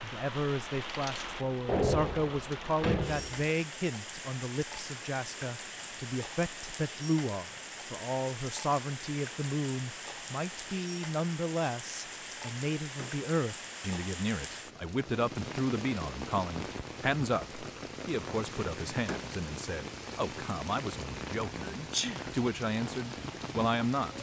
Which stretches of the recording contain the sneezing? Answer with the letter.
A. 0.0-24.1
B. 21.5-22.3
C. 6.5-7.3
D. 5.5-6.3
B.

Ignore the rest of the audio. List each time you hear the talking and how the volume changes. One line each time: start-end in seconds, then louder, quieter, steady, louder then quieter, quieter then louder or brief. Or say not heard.
0.0-24.1 steady.